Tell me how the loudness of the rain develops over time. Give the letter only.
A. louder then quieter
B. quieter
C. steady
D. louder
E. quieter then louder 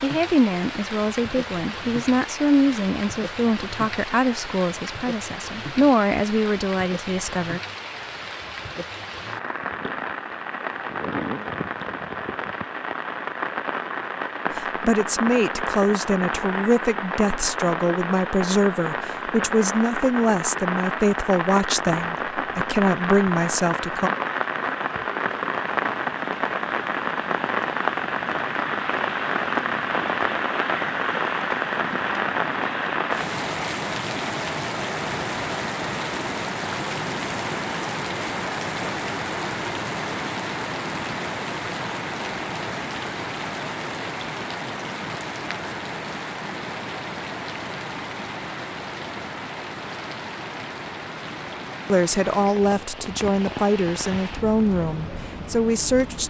A.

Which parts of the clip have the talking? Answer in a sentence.
The talking can be heard from 0.0 to 7.6 s, from 14.5 to 24.1 s and from 51.9 to 56.2 s.